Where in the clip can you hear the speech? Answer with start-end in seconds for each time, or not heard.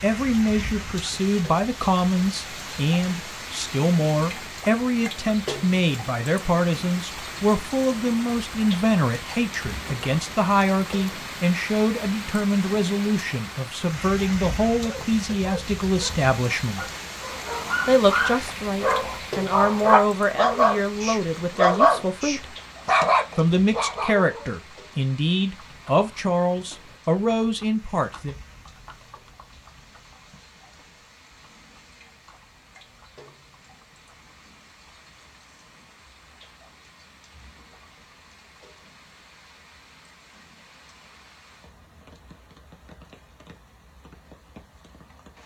0.0-16.8, 17.9-22.4, 23.4-28.4.